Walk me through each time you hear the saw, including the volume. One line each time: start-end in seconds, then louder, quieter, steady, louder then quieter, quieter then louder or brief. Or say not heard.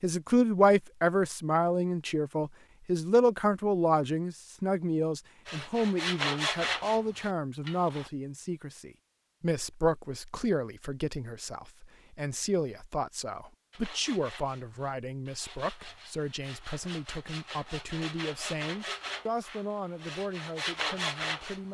5.5-8.1 brief
13.7-21.6 louder.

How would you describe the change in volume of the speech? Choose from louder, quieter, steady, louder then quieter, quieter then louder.
quieter.